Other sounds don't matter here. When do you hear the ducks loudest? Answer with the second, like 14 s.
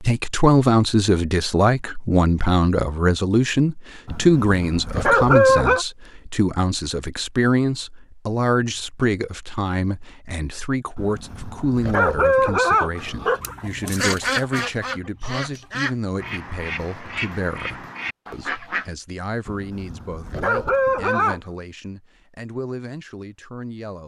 14 s.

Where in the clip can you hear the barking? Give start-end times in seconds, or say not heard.
4.0-5.8, 10.9-13.5, 19.4-21.4.